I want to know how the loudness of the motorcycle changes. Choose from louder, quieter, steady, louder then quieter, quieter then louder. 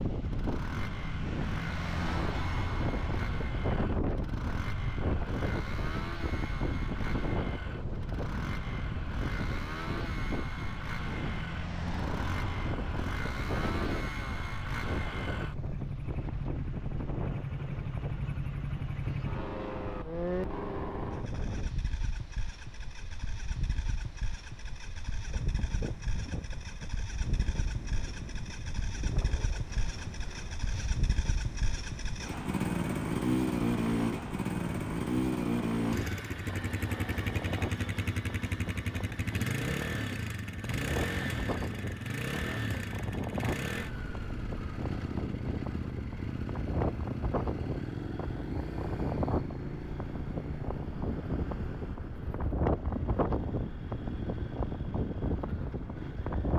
louder then quieter.